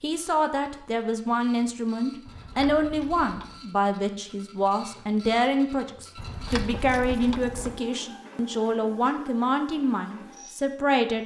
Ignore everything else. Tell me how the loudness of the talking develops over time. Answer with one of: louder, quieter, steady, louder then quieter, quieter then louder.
steady.